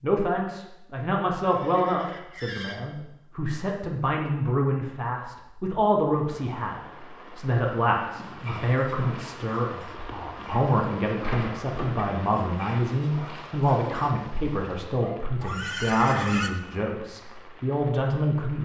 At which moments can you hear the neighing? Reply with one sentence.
The neighing can be heard from 1.4 to 2.8 s and from 15.4 to 16.5 s.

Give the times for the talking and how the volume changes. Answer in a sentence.
You can hear the talking from 0.0 to 18.6 s, at a steady volume.